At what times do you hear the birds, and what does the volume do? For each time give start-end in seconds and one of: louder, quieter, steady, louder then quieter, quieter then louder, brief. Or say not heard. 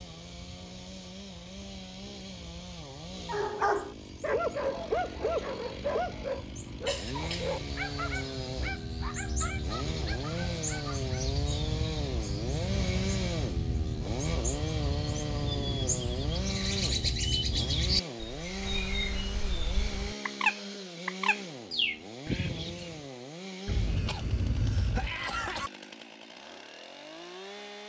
0.0-23.0 louder.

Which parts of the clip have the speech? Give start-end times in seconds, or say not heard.
not heard.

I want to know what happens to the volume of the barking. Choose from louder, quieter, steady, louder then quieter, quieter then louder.
quieter.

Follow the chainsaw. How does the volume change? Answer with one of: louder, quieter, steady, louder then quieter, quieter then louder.
louder then quieter.